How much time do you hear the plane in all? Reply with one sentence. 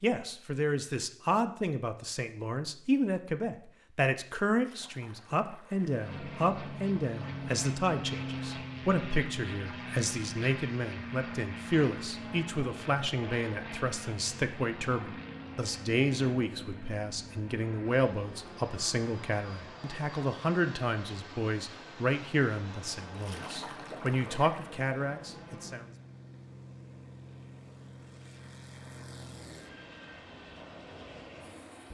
The plane can be heard for 26 seconds in total.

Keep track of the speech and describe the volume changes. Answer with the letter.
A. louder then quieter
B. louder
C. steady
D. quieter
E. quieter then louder
C.